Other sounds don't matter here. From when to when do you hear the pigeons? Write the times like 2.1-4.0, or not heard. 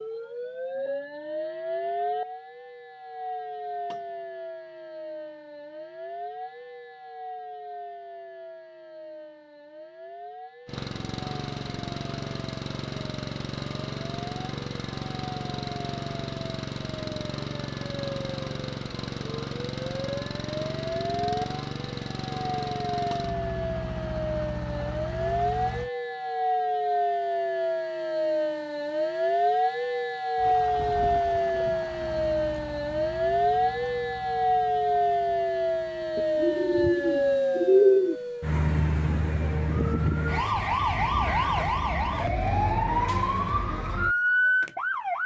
36.1-38.1.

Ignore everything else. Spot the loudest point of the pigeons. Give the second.
38 s.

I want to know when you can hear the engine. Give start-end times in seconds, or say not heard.
10.7-25.9, 30.4-37.4.